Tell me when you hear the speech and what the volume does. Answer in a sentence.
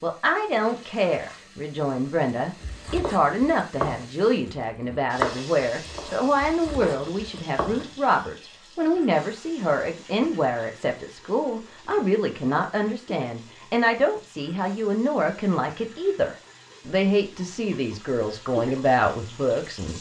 The speech can be heard from 0.0 to 19.9 s, at a steady volume.